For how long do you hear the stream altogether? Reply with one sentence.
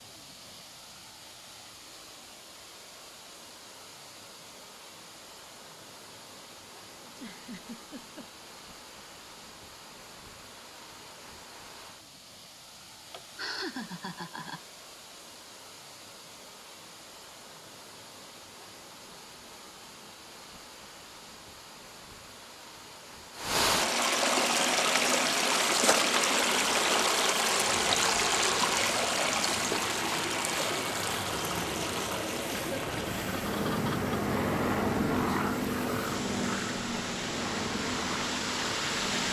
You can hear the stream for 39 seconds altogether.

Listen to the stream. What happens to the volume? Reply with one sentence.
The loudness of the stream goes up, then down.